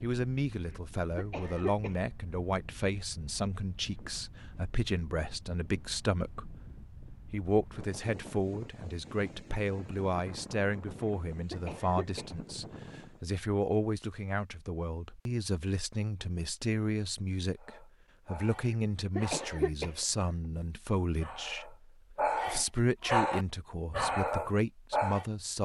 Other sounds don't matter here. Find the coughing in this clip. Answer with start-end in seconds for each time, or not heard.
0.7-2.0, 11.1-12.4, 18.7-20.1.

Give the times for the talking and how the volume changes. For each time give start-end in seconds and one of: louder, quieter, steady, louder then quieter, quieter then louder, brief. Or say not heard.
0.0-25.5 steady.